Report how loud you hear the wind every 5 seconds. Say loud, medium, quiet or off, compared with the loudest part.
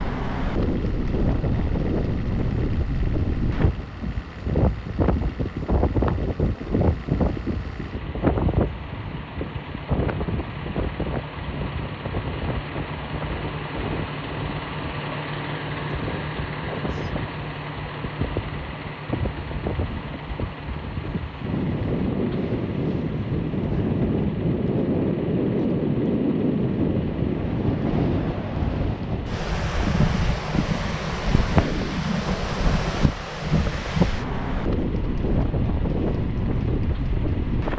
loud, loud, medium, medium, loud, loud, loud, loud.